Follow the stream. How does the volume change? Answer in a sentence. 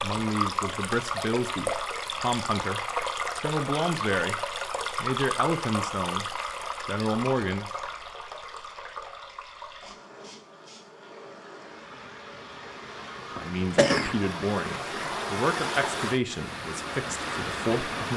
The volume of the stream goes down, then up.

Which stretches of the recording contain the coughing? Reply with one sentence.
The coughing can be heard from 13.3 to 14.2 s.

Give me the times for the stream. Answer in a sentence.
You can hear the stream from 0.0 to 18.1 s.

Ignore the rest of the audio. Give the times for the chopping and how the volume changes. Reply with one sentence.
The chopping can't be heard in this clip.